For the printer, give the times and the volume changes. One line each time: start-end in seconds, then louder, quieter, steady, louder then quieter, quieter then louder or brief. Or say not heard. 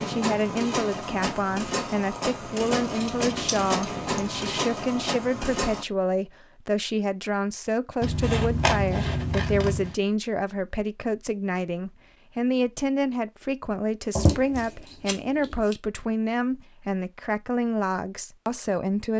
0.0-5.8 steady.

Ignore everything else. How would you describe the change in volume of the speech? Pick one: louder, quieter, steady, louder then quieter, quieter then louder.
steady.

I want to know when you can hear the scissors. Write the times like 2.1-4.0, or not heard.
2.8-4.6, 8.0-9.9, 14.2-15.8.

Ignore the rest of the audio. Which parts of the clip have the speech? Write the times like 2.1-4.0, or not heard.
0.1-19.1.